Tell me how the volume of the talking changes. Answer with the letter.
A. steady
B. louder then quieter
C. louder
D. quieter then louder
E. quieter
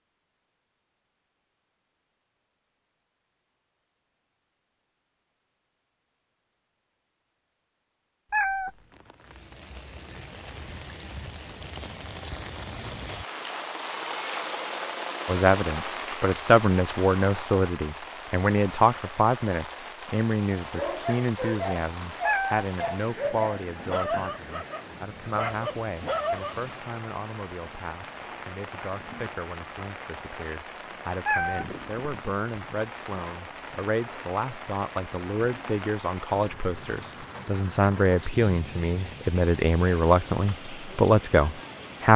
D.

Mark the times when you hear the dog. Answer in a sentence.
The dog can be heard from 20.6 to 26.8 s.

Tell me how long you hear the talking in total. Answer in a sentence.
The talking can be heard for 27 seconds in total.